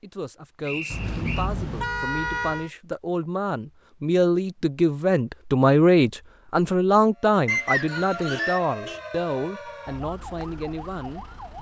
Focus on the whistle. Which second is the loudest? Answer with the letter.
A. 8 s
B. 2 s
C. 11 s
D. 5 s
A.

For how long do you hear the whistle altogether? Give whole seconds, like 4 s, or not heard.
2 s.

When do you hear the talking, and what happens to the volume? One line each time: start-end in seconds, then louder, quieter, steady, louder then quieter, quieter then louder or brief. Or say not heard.
0.0-11.5 louder then quieter.